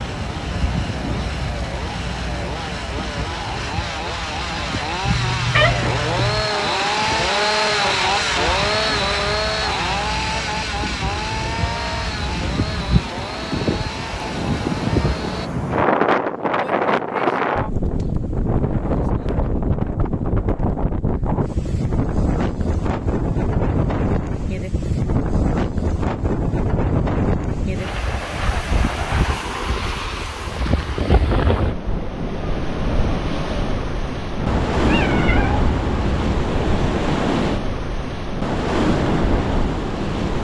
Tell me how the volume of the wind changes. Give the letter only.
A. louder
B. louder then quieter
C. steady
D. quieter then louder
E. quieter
A.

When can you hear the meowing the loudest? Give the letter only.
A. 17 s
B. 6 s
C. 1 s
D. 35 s
B.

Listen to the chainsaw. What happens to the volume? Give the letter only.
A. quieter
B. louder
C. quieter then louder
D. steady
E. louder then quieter
E.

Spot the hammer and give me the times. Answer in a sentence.
You can't hear the hammer here.